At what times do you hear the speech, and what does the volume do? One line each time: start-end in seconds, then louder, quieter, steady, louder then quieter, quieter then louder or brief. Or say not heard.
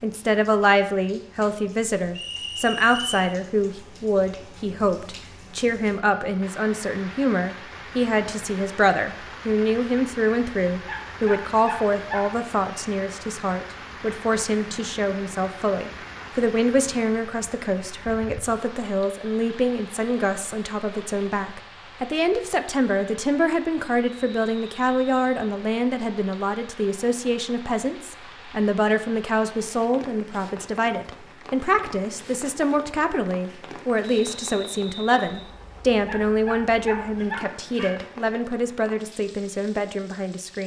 0.0-40.6 steady.